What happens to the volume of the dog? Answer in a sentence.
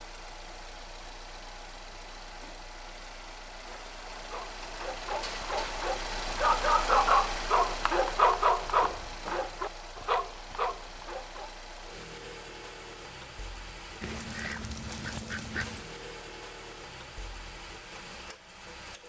The loudness of the dog goes up, then down.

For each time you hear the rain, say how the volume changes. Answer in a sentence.
The rain can't be heard in this clip.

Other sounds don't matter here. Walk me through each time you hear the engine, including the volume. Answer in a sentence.
You can hear the engine from 0.0 to 19.0 s, getting louder then quieter.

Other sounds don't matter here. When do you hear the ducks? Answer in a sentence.
The ducks can be heard from 14.0 to 15.9 s.